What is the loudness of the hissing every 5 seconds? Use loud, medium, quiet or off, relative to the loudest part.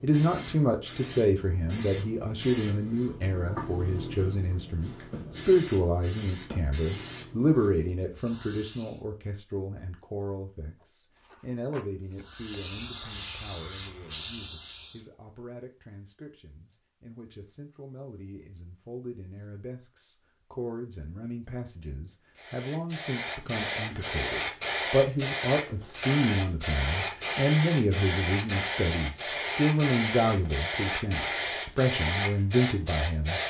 medium, medium, medium, off, loud, loud, loud.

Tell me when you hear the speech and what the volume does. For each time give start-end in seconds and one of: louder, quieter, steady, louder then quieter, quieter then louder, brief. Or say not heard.
0.0-33.4 quieter then louder.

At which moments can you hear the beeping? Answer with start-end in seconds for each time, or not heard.
not heard.